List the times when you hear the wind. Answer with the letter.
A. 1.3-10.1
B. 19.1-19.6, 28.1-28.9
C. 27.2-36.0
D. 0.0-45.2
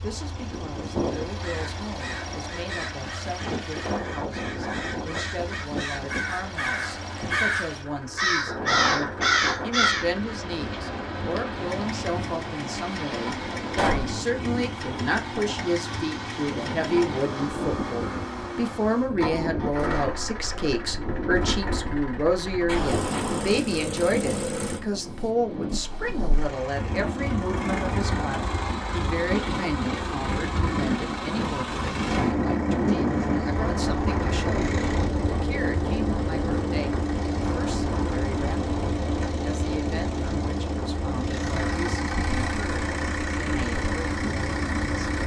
D.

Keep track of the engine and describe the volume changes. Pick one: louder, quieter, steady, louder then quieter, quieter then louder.
louder.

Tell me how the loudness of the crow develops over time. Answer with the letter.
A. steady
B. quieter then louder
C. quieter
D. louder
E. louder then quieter
D.